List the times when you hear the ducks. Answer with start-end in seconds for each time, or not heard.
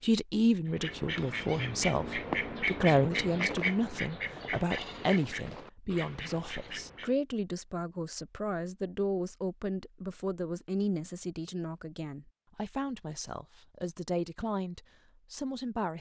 0.7-7.2.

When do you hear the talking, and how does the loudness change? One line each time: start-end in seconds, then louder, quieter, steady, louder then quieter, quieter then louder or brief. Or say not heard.
0.0-15.9 quieter.